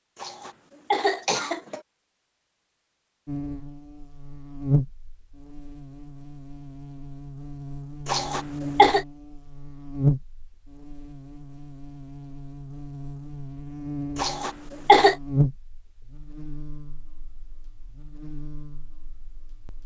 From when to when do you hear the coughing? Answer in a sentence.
You can hear the coughing from 0.2 to 1.8 s, from 8.1 to 9.1 s and from 14.2 to 15.2 s.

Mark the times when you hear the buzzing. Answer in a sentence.
The buzzing can be heard from 3.2 to 19.8 s.